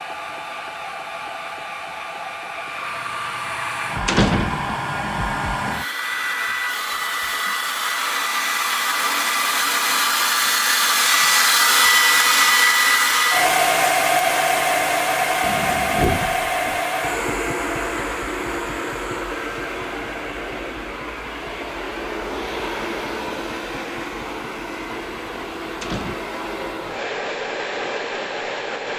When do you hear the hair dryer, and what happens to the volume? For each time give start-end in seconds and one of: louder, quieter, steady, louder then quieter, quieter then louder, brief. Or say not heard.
0.0-28.9 louder then quieter.